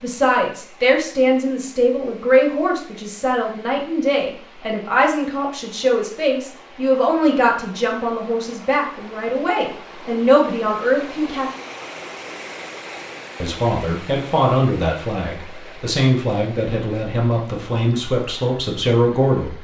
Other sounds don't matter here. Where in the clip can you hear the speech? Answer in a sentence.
The speech can be heard from 0.0 to 11.5 s and from 13.4 to 19.5 s.